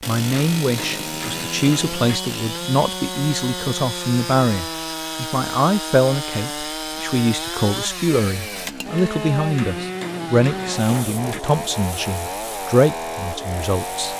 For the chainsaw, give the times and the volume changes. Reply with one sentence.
The chainsaw can be heard from 0.0 to 14.1 s, at a steady volume.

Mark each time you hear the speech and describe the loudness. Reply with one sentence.
The speech can be heard from 0.1 to 14.1 s, at a steady volume.